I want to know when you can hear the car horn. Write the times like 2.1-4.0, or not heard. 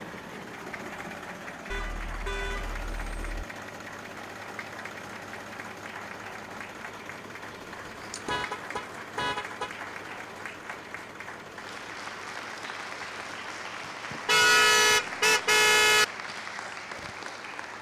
1.7-3.4, 7.8-9.8, 14.2-16.1.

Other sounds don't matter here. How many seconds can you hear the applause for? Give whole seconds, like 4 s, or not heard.
18 s.